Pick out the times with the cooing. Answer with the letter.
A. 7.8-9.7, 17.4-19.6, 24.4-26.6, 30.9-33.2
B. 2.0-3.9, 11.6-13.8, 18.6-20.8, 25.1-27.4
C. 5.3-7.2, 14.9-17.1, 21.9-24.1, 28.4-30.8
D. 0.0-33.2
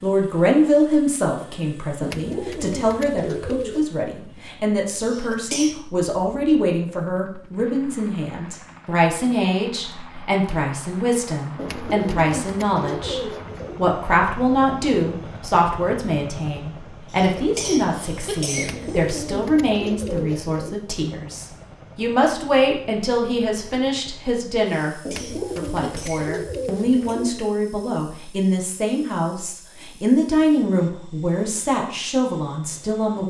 B.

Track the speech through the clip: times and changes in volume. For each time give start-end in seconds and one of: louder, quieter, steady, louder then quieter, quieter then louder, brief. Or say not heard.
0.0-33.2 steady.